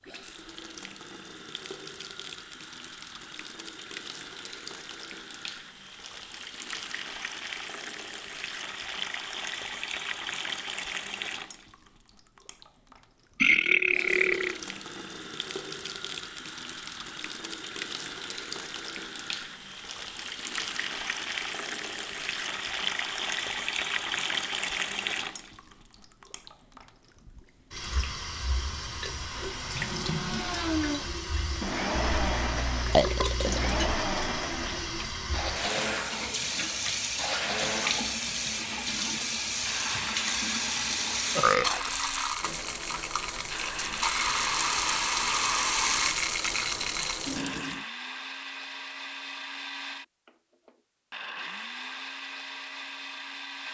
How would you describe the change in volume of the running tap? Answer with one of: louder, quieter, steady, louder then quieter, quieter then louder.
louder.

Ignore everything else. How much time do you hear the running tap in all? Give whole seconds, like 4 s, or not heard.
48 s.